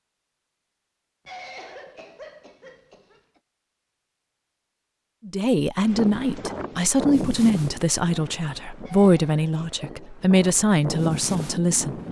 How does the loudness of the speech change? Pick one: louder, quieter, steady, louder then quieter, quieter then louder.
steady.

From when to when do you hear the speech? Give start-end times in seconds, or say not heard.
5.2-11.9.